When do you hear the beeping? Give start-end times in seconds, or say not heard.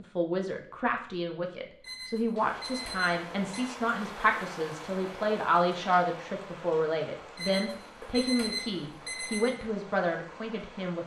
1.8-3.8, 7.3-9.6.